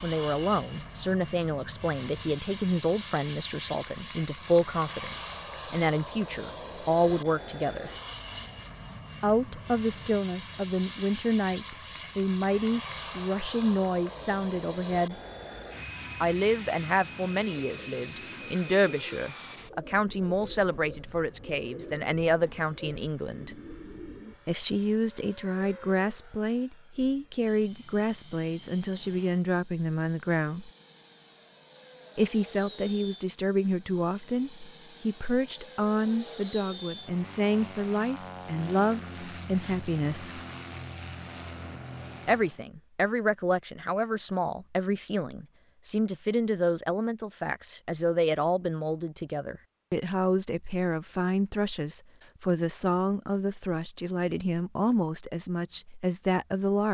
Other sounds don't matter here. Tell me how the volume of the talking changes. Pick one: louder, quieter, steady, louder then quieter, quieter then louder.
steady.